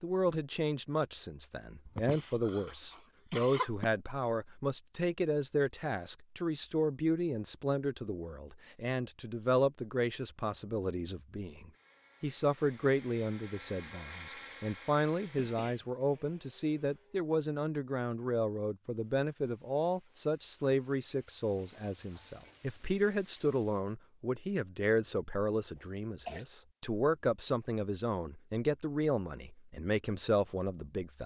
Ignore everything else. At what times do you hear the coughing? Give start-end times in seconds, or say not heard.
1.9-3.9, 15.3-15.9, 25.8-26.4.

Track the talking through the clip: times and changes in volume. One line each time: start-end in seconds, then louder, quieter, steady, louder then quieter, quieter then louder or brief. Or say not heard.
0.0-31.2 steady.